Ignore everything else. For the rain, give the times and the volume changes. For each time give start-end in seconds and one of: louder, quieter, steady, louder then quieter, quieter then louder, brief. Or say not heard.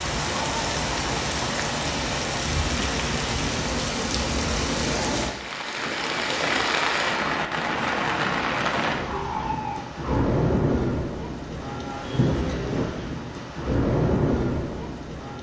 0.0-15.3 steady.